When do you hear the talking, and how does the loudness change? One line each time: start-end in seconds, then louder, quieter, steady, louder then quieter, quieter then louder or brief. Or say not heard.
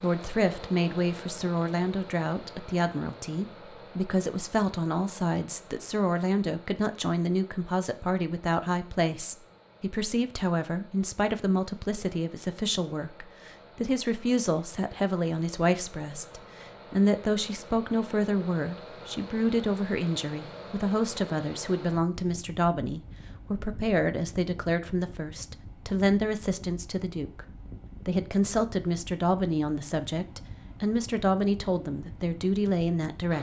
0.0-33.3 steady.